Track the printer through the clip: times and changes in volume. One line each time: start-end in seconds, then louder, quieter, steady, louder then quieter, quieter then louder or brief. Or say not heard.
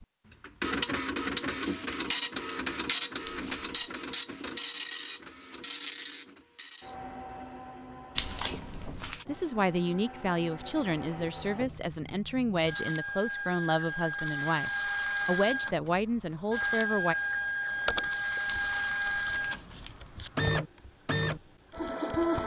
0.0-22.4 quieter then louder.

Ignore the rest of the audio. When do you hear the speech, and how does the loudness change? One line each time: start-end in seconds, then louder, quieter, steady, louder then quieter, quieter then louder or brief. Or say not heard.
9.2-17.1 steady.